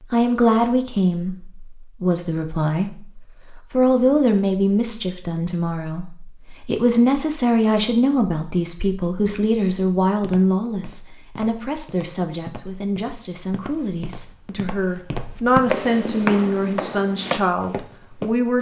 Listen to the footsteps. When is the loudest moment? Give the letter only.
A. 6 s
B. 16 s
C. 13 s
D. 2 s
B.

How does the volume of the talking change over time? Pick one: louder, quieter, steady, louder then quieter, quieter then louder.
quieter then louder.